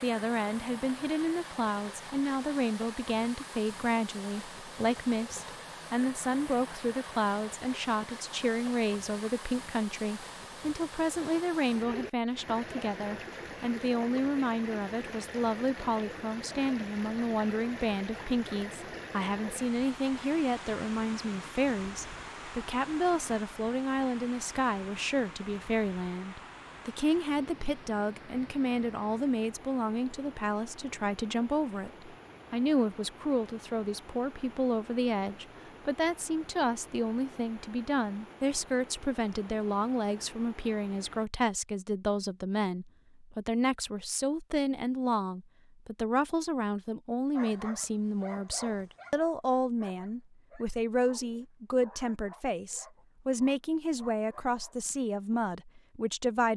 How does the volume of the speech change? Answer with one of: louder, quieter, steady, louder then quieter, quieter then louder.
steady.